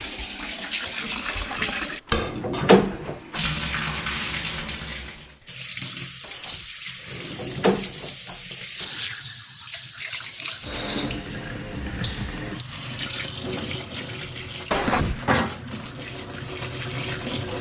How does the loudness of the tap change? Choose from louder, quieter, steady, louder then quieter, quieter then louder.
steady.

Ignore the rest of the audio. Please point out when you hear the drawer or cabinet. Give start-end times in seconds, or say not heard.
1.2-3.5, 6.2-8.9, 14.7-15.3.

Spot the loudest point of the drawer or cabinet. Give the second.
3 s.